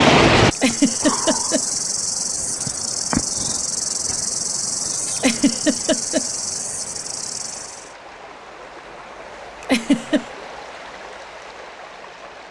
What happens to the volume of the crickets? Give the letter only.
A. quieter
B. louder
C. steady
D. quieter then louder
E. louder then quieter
A.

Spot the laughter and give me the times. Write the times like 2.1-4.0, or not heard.
0.6-1.6, 5.2-6.2, 9.6-10.2.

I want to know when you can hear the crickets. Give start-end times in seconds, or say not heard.
0.0-8.0.